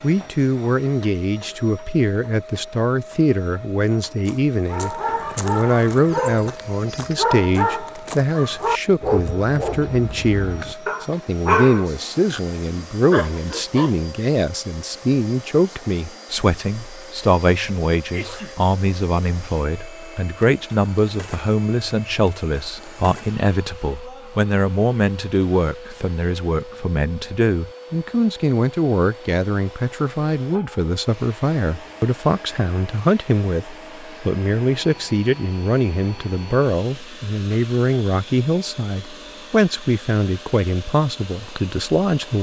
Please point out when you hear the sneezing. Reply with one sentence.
You can hear the sneezing from 18.1 to 18.6 s.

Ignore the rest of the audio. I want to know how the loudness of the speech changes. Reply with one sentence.
The loudness of the speech stays about the same.